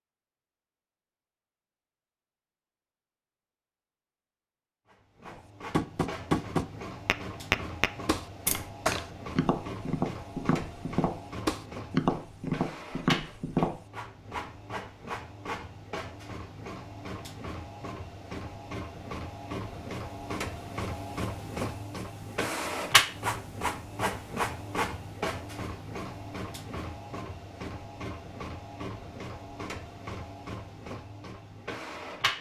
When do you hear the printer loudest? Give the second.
23 s.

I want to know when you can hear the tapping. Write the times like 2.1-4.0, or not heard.
5.2-13.8.